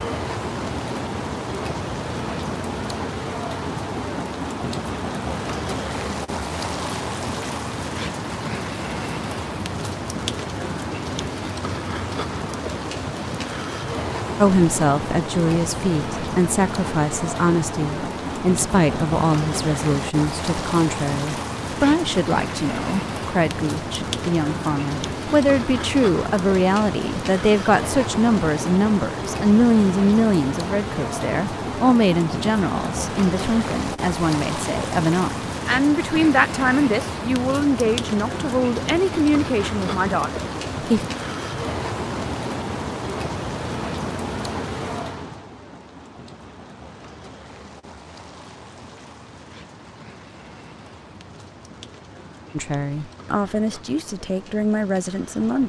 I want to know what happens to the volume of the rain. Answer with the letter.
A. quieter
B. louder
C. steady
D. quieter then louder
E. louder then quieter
A.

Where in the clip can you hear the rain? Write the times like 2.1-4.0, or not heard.
0.0-55.6.